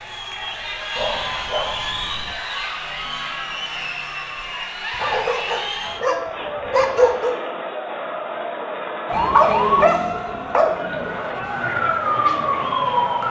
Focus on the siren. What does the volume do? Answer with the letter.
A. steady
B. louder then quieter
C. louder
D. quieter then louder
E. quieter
D.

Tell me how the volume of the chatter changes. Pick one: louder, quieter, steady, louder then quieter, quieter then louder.
steady.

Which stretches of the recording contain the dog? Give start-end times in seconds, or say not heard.
0.9-2.4, 4.9-7.3, 9.2-10.8.